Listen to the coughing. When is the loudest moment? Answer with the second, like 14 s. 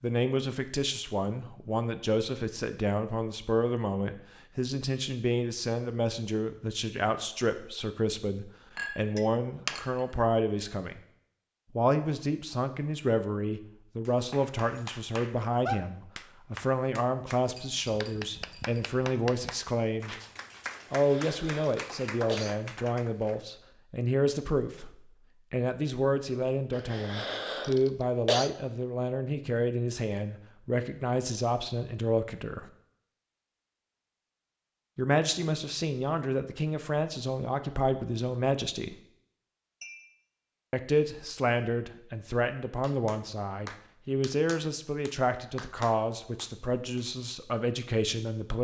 28 s.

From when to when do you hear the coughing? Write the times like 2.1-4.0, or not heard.
20.8-22.6, 26.7-28.5.